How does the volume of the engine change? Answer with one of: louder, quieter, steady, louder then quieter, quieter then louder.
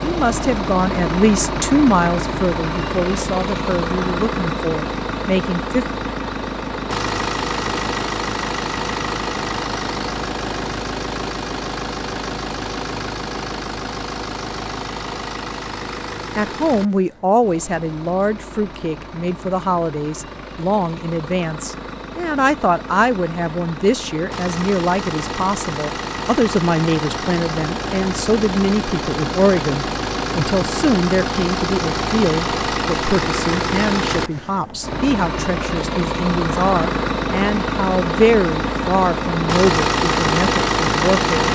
quieter then louder.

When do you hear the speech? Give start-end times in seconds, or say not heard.
0.0-5.8, 16.4-41.5.